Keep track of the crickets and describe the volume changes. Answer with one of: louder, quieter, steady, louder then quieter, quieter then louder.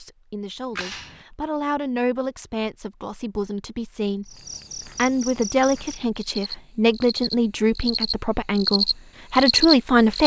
louder.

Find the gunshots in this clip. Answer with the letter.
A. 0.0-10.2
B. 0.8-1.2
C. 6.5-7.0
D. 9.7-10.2
B.